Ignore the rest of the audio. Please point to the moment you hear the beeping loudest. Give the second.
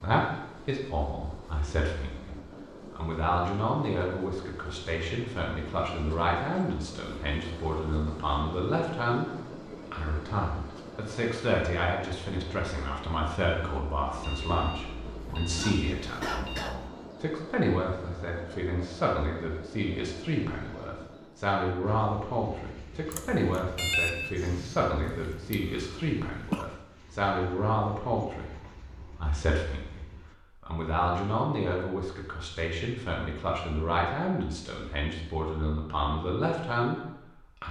24 s.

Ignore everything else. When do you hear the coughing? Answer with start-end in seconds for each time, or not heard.
15.6-16.9, 25.0-26.8.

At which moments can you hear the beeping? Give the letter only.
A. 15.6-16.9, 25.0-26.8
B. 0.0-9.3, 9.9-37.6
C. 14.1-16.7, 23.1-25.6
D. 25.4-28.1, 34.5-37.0
C.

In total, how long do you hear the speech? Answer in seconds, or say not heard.
37 s.